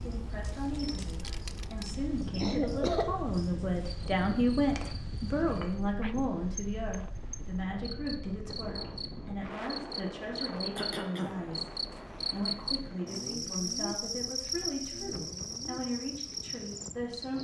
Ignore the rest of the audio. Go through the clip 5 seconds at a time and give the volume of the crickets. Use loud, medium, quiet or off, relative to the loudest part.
quiet, medium, loud, loud.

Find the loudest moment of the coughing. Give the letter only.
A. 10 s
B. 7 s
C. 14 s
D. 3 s
D.